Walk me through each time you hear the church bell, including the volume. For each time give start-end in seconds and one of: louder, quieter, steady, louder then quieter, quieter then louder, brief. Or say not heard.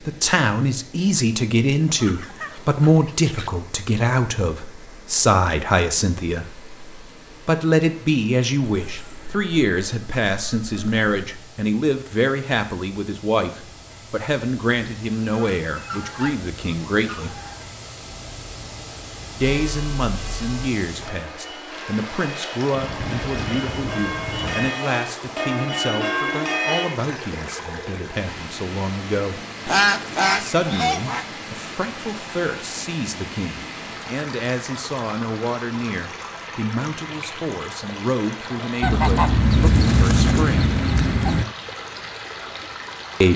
19.4-26.9 louder.